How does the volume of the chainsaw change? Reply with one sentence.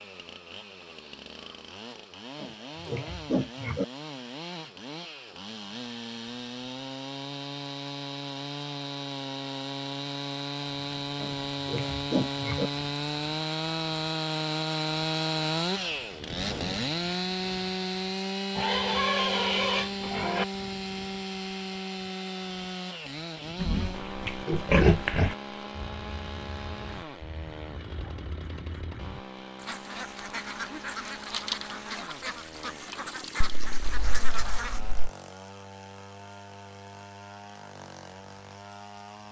The loudness of the chainsaw goes up, then down.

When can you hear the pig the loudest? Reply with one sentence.
The volume of the pig peaks at 25 seconds.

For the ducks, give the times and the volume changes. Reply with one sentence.
The ducks can be heard from 25.7 to 34.8 s, getting louder.